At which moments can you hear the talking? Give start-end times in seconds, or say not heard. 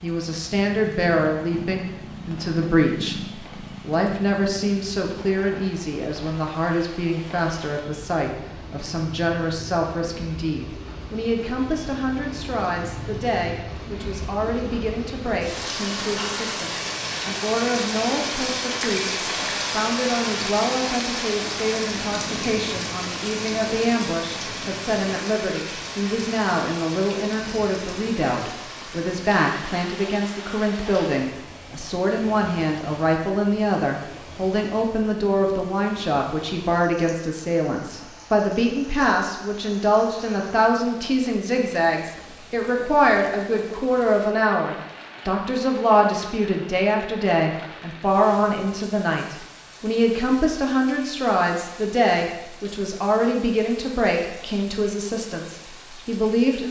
0.0-56.6.